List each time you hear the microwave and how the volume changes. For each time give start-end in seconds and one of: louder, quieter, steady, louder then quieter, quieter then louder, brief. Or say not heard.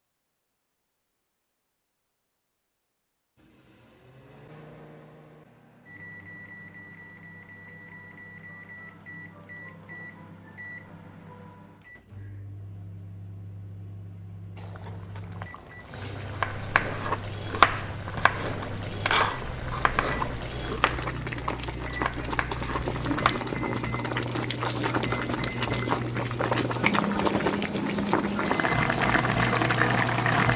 3.4-30.5 louder.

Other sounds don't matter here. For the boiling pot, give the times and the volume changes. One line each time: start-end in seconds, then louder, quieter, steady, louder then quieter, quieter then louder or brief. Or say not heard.
14.6-30.5 louder.